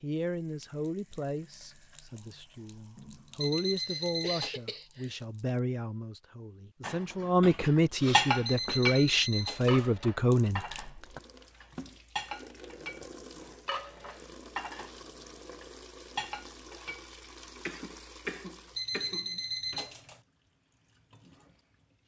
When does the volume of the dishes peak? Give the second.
8 s.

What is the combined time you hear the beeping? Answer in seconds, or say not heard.
4 s.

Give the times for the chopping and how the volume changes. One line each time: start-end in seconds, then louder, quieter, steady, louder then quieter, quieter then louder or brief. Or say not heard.
not heard.